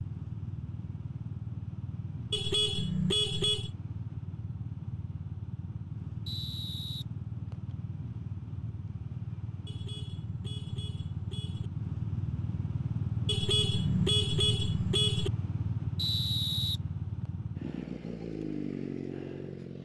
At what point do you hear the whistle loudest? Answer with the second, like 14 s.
16 s.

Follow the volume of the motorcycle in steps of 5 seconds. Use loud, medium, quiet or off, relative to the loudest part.
medium, medium, loud, loud.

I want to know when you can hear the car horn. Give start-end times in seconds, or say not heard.
2.3-3.7, 9.7-11.7, 13.2-15.3.